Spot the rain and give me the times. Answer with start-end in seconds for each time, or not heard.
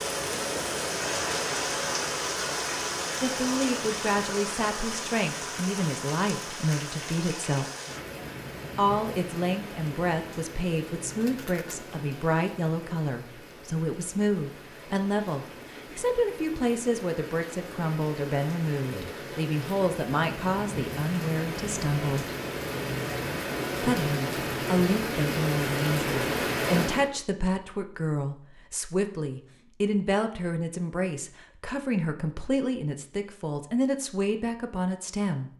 0.0-27.1.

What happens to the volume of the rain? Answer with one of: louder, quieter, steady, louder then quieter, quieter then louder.
quieter then louder.